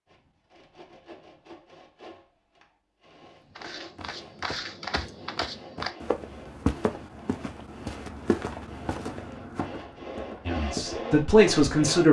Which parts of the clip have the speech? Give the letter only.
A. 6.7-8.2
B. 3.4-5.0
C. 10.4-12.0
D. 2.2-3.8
C.